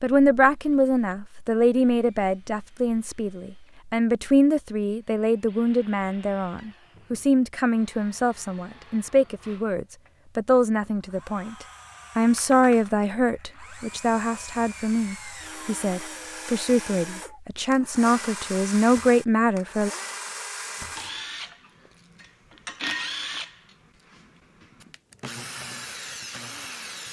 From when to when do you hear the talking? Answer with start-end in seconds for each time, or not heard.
0.0-19.9.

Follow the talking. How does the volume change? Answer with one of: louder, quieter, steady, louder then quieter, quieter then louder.
steady.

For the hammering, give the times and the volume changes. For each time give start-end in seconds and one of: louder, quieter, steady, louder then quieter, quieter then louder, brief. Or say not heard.
not heard.